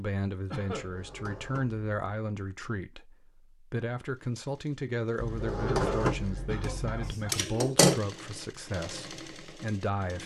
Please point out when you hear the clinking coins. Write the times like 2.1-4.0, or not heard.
not heard.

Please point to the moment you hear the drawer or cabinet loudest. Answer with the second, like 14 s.
6 s.